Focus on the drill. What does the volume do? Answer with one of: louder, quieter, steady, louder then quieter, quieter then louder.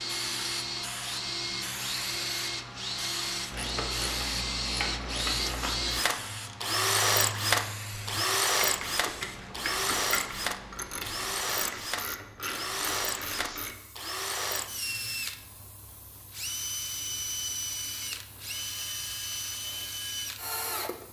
louder then quieter.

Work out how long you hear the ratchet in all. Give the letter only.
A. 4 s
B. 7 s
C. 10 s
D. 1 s
C.